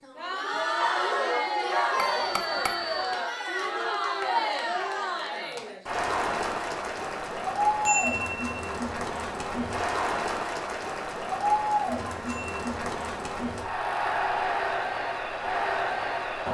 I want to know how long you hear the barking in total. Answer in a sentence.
The barking can be heard for 2 seconds in total.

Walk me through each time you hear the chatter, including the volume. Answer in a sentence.
You can hear the chatter from 0.0 to 16.4 s, at a steady volume.